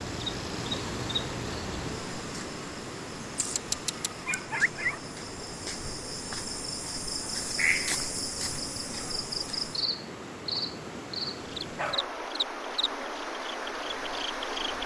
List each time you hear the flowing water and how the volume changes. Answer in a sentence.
You can hear the flowing water from 0.0 to 14.8 s, getting quieter then louder.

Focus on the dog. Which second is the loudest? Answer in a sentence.
The volume of the dog peaks at 5 seconds.